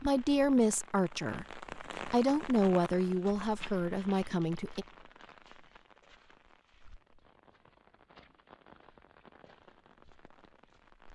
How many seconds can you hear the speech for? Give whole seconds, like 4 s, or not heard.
5 s.